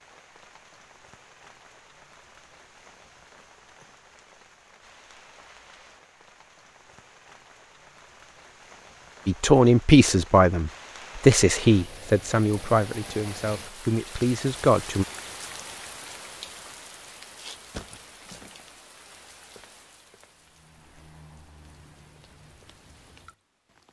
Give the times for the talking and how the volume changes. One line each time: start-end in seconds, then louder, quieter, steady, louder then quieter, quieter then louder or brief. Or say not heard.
9.2-15.1 quieter.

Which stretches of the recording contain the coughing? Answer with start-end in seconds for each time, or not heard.
not heard.